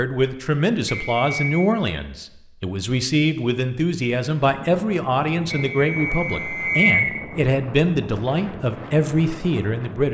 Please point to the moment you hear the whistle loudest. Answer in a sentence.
The loudest moment of the whistle is at 7 seconds.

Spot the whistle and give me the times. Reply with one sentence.
The whistle can be heard from 0.8 to 1.4 s and from 5.5 to 7.2 s.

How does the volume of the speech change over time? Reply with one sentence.
The loudness of the speech stays about the same.